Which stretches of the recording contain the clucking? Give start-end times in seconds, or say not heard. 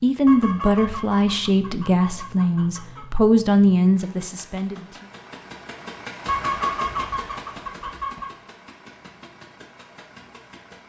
0.2-3.0, 6.2-8.3.